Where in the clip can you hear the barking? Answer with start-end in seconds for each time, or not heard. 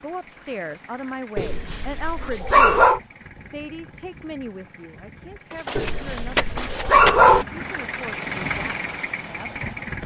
1.4-3.0, 5.8-7.5.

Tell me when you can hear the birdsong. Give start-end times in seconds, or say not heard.
not heard.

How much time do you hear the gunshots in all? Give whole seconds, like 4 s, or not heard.
2 s.